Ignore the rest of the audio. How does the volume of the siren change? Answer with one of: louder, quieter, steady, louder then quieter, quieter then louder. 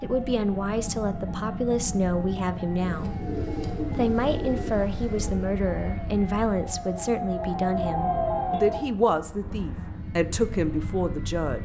louder.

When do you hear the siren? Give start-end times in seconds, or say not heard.
0.0-8.9.